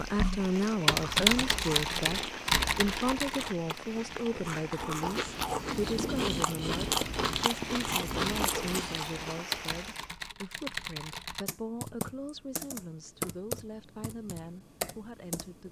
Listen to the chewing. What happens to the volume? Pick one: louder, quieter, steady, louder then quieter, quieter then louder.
louder.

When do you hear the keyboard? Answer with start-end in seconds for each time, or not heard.
0.0-3.8, 6.8-15.6.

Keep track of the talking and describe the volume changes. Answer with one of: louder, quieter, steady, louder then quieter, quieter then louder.
quieter.